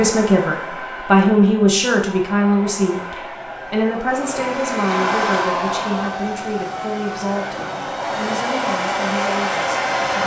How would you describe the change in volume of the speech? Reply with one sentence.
The loudness of the speech goes down.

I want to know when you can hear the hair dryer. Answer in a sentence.
You can hear the hair dryer from 0.0 to 10.2 s.